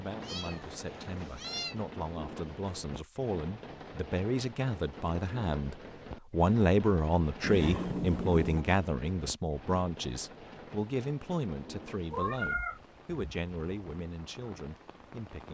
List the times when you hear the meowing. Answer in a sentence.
The meowing can be heard from 0.2 to 1.8 s, from 7.4 to 8.7 s and from 12.1 to 12.8 s.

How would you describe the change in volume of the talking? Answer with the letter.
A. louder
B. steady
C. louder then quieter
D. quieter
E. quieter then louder
C.